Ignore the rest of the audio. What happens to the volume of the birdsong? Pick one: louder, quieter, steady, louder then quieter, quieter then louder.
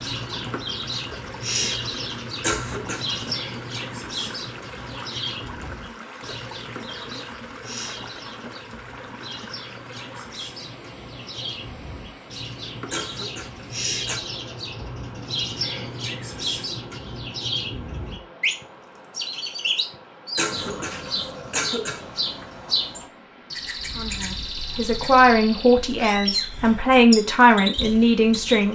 quieter then louder.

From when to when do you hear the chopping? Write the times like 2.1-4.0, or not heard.
not heard.